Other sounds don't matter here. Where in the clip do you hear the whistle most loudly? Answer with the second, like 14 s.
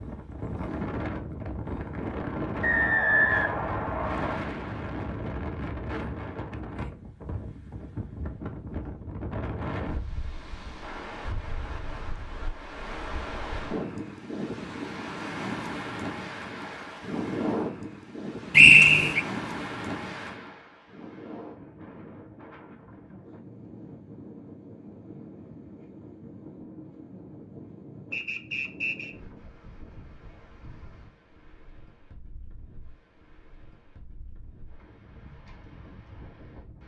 19 s.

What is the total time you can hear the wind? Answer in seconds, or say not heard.
37 s.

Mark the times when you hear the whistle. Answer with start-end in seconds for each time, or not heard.
2.6-4.3, 18.5-19.2, 28.1-29.1.